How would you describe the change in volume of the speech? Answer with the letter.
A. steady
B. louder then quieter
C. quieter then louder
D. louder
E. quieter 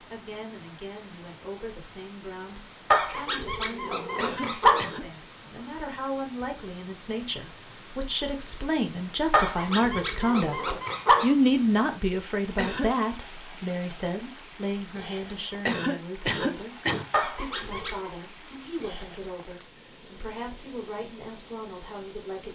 B.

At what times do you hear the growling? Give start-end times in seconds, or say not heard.
2.9-4.9, 9.3-11.3, 17.1-18.1.